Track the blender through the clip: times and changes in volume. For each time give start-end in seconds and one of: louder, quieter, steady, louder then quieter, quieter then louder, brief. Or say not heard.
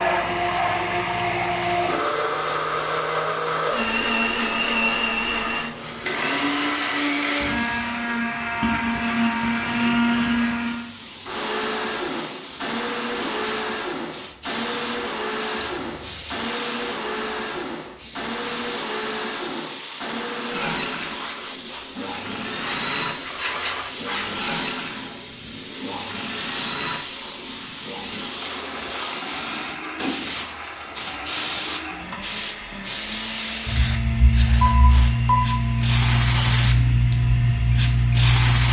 0.0-38.6 quieter.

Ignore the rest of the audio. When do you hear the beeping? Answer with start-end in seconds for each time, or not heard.
15.6-16.6, 34.6-35.5.